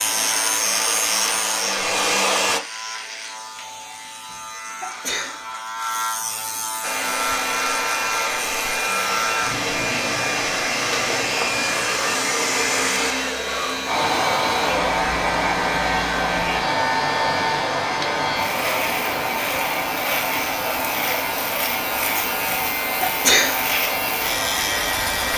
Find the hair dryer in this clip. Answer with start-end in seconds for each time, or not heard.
0.0-2.6, 6.8-25.3.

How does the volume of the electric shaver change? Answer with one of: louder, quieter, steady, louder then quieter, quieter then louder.
steady.